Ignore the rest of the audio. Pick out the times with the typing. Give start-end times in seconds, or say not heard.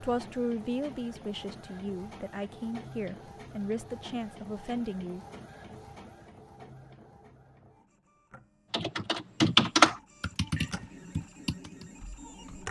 8.7-12.6.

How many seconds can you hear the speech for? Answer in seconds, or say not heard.
5 s.